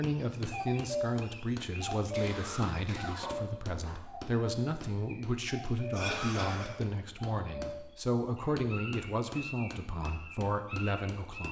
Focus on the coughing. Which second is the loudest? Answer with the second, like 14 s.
6 s.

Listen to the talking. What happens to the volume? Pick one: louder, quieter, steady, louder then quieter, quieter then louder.
steady.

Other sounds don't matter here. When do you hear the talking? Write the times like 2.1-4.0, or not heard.
0.0-11.4.